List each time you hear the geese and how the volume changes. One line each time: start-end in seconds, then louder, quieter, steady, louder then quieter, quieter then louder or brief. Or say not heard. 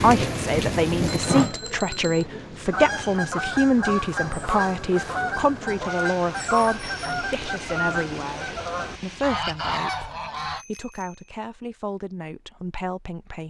2.6-10.7 steady.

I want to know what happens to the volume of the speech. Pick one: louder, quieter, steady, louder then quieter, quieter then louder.
quieter.